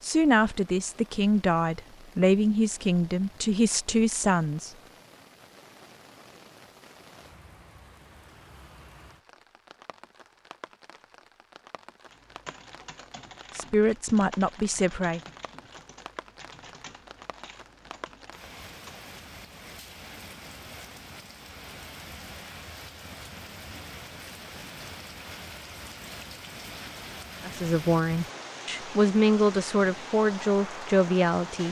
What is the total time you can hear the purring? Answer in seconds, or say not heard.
not heard.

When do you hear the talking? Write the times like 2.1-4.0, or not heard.
0.0-4.7, 13.6-15.2, 27.4-31.6.